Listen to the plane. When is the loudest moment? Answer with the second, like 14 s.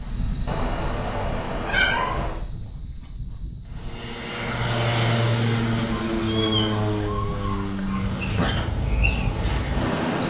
5 s.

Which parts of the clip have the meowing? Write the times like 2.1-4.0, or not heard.
0.5-2.4, 6.1-8.1.